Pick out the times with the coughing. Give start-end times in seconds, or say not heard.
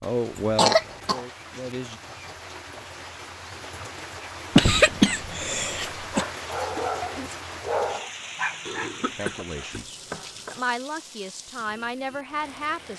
0.6-1.2, 4.5-6.2, 8.7-10.6.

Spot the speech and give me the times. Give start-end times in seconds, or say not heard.
0.0-2.0, 9.2-12.9.